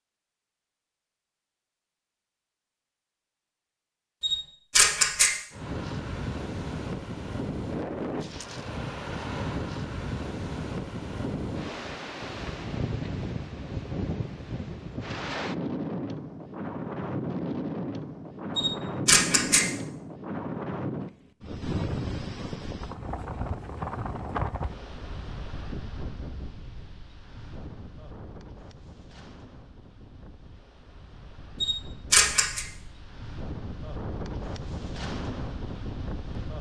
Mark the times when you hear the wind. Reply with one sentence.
You can hear the wind from 5.5 to 36.5 s.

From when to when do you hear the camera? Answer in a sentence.
You can hear the camera from 4.2 to 5.3 s, from 18.6 to 19.6 s and from 31.6 to 32.6 s.